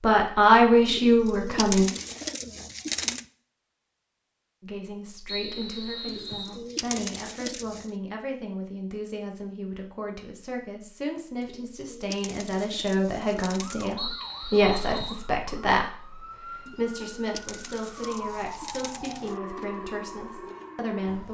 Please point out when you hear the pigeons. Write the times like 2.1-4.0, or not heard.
0.8-3.2, 6.0-7.9, 11.4-13.9, 16.6-19.4.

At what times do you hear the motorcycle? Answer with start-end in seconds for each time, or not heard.
not heard.